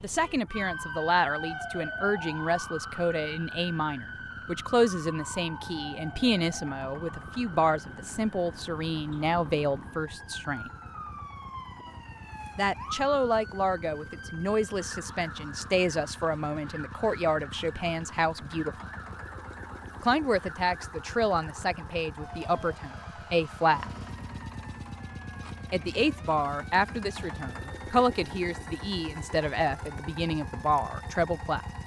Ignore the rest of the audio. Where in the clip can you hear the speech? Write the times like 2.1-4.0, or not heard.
0.0-10.7, 12.6-18.8, 20.0-23.9, 25.7-31.6.